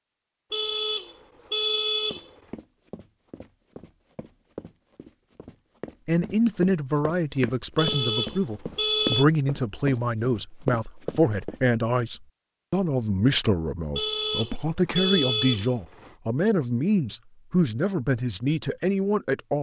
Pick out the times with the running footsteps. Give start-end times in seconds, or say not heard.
2.1-11.6.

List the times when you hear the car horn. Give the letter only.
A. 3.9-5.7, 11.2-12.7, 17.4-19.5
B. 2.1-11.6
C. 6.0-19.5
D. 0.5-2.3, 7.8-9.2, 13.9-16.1
D.